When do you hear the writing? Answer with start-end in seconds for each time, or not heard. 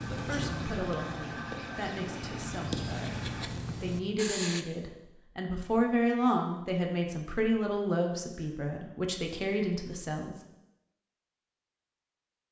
0.0-4.7.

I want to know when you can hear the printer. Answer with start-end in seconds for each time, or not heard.
0.0-3.5.